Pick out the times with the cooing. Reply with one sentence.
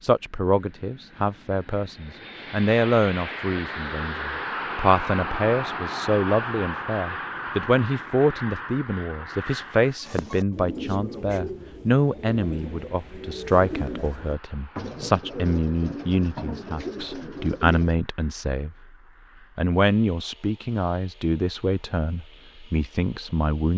You can hear the cooing from 9.8 to 17.9 s.